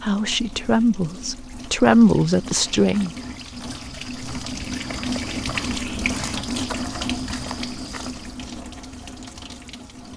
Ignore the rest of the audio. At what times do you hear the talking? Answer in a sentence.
The talking can be heard from 0.0 to 3.1 s.